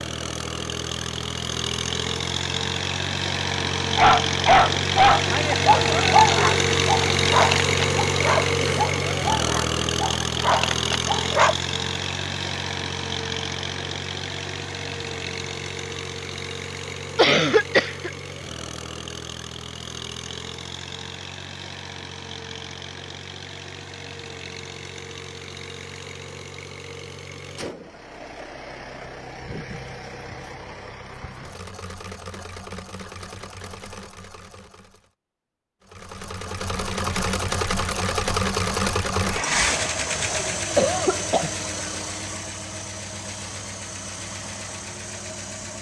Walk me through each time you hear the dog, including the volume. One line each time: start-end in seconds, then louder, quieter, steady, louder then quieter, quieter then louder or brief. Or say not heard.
4.0-11.6 quieter.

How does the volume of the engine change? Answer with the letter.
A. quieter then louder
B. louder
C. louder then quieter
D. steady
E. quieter
A.